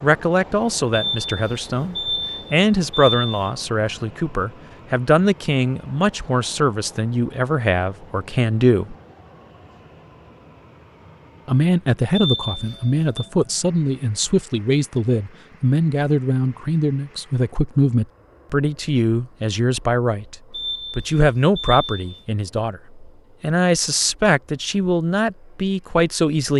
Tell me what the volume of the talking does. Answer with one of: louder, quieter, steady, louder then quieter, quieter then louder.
steady.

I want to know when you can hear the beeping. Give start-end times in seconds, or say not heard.
0.9-3.5, 12.2-13.2, 20.5-22.2.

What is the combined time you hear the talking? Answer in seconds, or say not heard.
24 s.